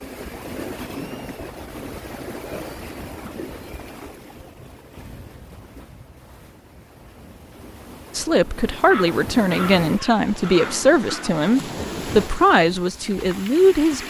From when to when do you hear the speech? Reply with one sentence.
You can hear the speech from 8.2 to 14.0 s.